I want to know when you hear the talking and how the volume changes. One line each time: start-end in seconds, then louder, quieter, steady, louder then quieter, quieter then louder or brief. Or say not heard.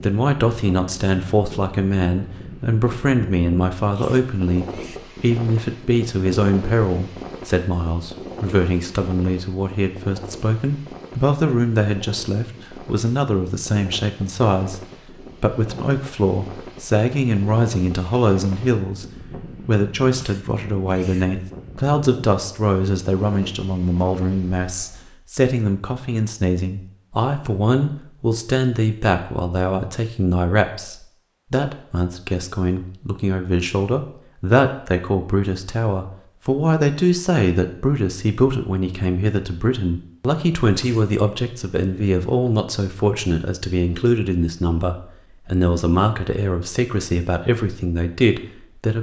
0.0-48.9 steady.